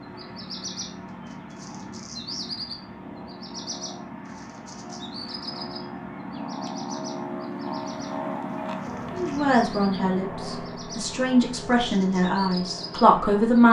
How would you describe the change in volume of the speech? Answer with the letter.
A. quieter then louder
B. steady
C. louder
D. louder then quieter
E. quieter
A.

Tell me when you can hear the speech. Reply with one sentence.
You can hear the speech from 9.2 to 13.6 s.